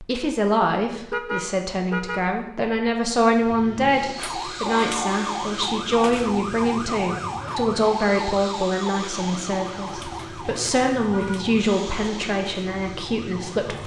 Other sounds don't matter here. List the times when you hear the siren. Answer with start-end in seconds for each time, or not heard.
4.2-13.8.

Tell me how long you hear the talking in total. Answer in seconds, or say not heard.
14 s.